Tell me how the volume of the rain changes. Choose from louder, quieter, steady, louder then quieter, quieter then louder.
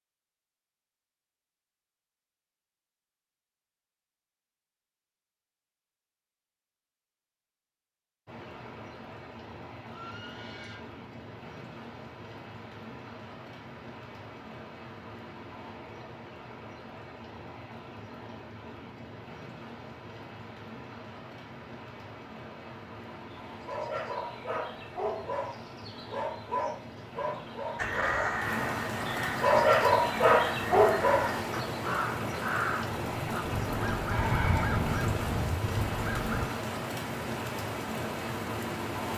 louder.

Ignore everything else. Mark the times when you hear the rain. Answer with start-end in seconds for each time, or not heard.
8.2-39.1.